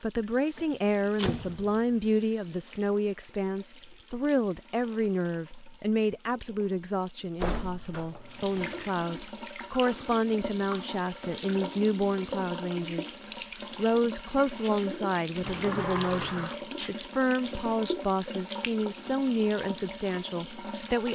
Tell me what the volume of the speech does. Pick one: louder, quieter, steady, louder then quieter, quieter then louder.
steady.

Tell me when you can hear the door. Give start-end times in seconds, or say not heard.
0.6-1.8, 7.4-8.8, 15.4-16.6.